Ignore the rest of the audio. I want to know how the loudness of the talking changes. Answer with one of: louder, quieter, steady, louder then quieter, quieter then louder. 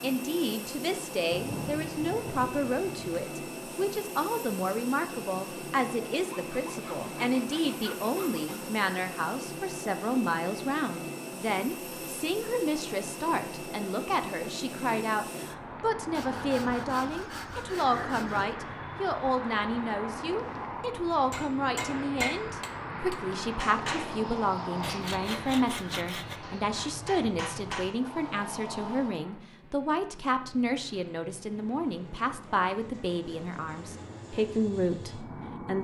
steady.